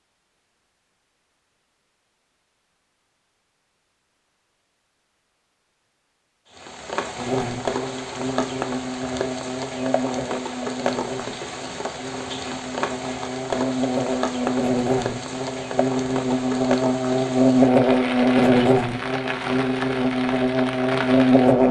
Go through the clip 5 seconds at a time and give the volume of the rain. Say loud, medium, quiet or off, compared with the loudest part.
off, loud, loud, loud, loud.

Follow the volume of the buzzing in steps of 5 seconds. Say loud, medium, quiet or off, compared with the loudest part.
off, medium, medium, loud, loud.